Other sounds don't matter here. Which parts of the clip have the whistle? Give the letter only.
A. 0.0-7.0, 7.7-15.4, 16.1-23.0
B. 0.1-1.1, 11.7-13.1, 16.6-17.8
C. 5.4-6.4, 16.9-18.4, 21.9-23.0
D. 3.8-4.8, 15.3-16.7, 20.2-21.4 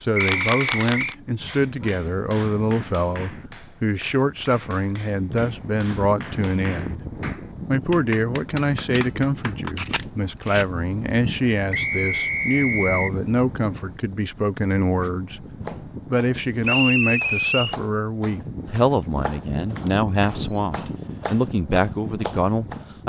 B.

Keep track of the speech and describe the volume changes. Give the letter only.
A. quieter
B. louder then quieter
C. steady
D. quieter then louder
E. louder
C.